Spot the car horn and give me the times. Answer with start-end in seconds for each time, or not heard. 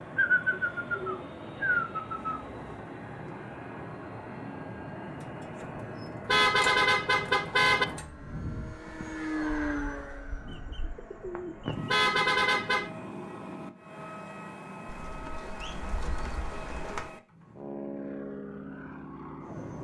6.2-7.8, 11.8-12.9.